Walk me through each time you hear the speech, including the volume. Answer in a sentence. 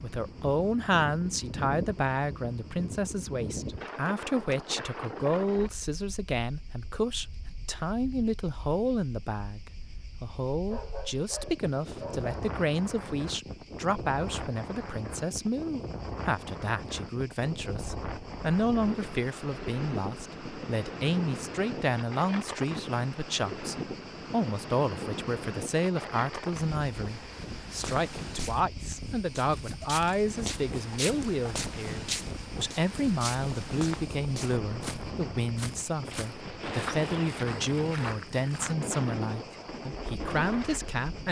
The speech can be heard from 0.0 to 41.2 s, at a steady volume.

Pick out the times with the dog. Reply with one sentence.
You can hear the dog from 10.7 to 12.3 s.